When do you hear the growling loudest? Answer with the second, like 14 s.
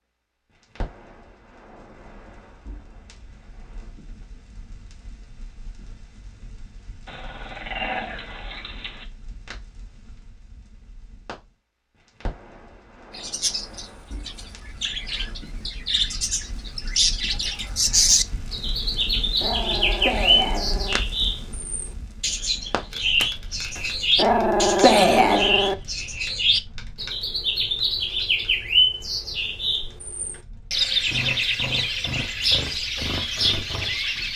25 s.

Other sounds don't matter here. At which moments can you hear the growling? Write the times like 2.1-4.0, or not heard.
7.0-9.1, 18.9-21.0, 23.8-25.8.